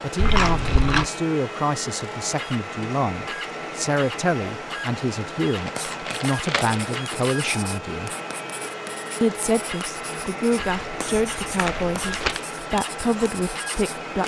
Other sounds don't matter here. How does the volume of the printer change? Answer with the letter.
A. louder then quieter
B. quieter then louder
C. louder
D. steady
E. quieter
D.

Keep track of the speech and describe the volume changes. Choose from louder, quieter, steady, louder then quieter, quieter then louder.
steady.